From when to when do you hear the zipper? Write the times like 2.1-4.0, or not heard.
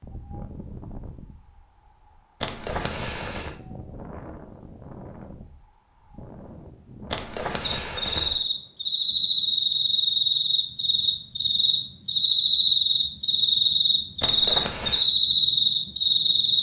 2.4-3.5, 7.1-8.4, 14.2-15.1.